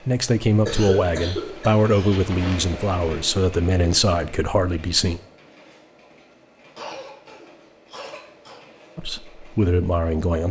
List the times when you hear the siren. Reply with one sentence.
The siren can't be heard in this clip.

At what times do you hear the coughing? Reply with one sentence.
You can hear the coughing from 0.7 to 2.6 s and from 6.8 to 8.7 s.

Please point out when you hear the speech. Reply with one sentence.
You can hear the speech from 0.1 to 5.2 s and from 8.9 to 10.4 s.